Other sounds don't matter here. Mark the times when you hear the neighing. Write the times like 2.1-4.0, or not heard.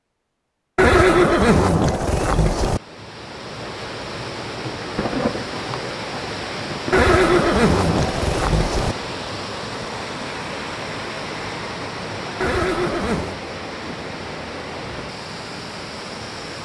0.8-2.8, 6.9-8.9, 12.4-13.4.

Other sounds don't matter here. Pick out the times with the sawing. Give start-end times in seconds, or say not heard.
not heard.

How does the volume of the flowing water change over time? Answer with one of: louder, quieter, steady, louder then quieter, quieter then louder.
steady.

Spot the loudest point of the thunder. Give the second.
5 s.